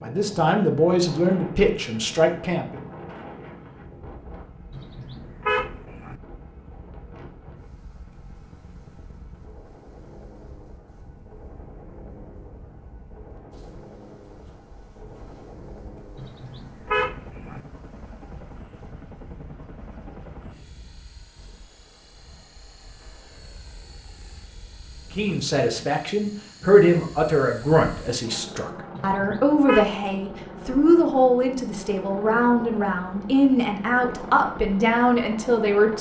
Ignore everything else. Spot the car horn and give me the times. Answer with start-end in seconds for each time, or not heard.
4.7-6.2, 16.1-17.6, 28.9-29.9.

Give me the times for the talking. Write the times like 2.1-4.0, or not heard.
0.0-2.8, 25.1-35.9.